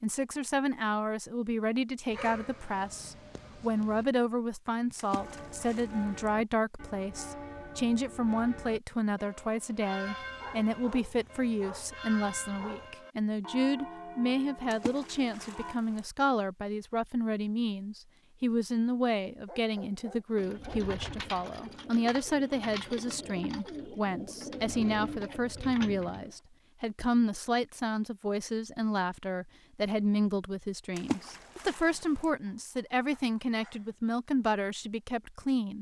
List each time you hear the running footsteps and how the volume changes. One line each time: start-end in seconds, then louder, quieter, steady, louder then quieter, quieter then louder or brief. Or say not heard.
not heard.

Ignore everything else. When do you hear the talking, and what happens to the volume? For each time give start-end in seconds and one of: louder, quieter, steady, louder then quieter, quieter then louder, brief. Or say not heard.
0.0-35.7 steady.